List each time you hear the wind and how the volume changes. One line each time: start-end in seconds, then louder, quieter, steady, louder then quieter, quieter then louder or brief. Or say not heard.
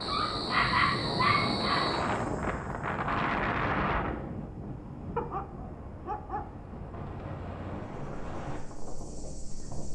0.0-9.9 quieter.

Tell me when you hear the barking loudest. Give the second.
1 s.